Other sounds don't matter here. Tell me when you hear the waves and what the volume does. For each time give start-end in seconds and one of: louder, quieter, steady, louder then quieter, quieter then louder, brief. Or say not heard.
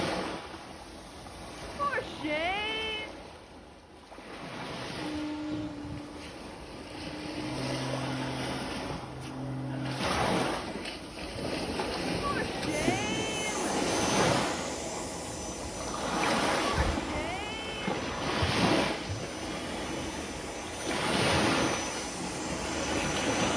0.0-23.5 louder.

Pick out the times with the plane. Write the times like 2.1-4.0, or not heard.
4.9-10.0, 12.7-23.5.